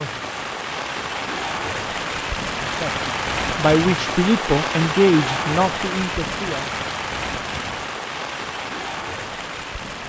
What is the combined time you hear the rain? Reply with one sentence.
The rain can be heard for 10 seconds in total.